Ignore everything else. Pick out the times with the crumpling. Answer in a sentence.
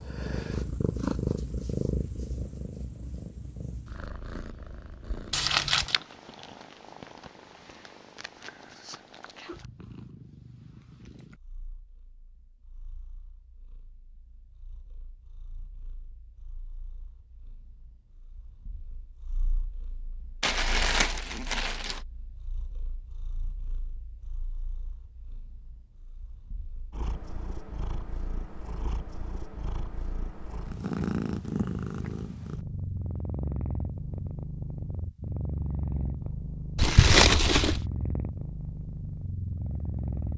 The crumpling can be heard from 5.3 to 6.0 s, from 20.4 to 22.0 s and from 36.8 to 37.8 s.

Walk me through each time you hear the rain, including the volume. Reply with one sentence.
You can't hear the rain here.